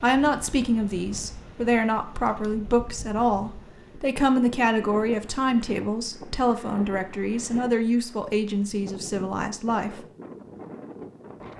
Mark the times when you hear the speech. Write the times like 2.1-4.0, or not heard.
0.0-10.1.